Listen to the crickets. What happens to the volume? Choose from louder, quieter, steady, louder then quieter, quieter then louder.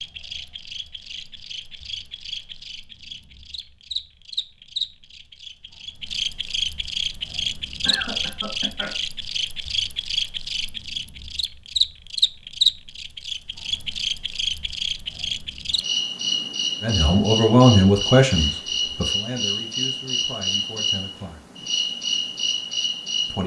louder.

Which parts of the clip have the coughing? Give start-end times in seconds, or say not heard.
7.8-8.9.